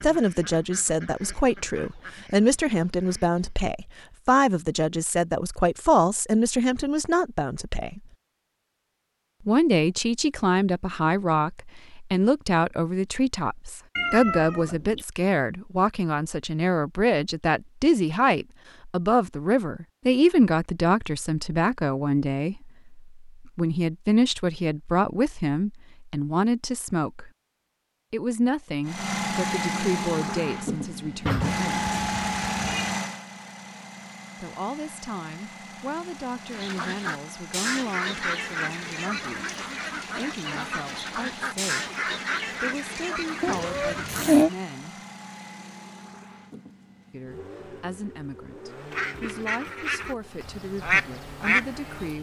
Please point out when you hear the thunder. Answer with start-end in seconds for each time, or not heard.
not heard.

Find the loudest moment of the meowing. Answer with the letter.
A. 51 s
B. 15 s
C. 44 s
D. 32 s
C.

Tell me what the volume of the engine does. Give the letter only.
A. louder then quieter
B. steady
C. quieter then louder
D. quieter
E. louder
D.